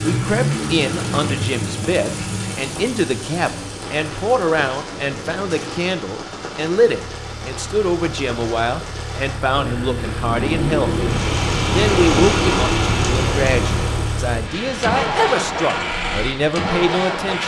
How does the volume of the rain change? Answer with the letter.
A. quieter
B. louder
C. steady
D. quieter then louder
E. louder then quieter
E.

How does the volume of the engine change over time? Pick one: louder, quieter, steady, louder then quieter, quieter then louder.
quieter then louder.